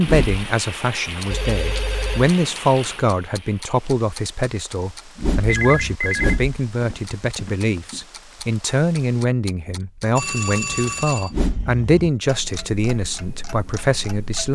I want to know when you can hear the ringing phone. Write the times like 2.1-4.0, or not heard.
1.3-2.4, 5.5-8.0, 10.2-11.3.